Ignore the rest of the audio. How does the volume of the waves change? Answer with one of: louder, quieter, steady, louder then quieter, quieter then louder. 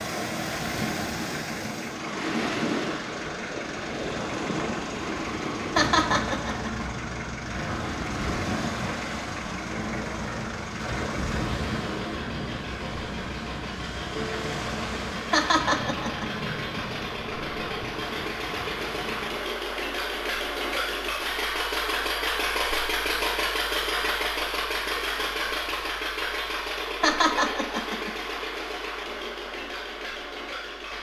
quieter.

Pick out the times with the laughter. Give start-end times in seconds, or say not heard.
5.8-6.8, 15.3-16.4, 27.0-28.1.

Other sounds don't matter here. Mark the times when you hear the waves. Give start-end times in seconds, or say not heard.
0.0-19.4.